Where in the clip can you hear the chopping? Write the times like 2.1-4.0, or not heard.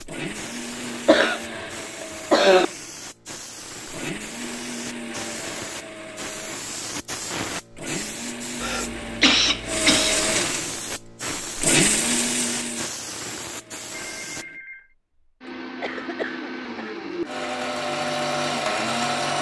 not heard.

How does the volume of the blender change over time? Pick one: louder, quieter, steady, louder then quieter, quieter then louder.
louder.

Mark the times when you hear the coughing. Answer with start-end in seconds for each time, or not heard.
1.1-2.6, 8.6-10.2, 15.8-16.9.